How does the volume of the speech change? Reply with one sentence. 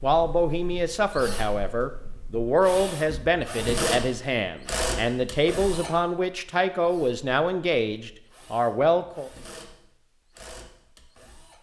The loudness of the speech stays about the same.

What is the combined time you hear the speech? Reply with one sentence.
You can hear the speech for 9 seconds altogether.